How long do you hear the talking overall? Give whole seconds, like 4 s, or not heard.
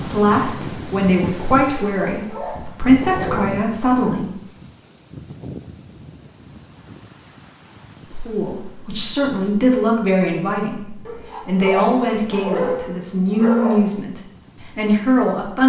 12 s.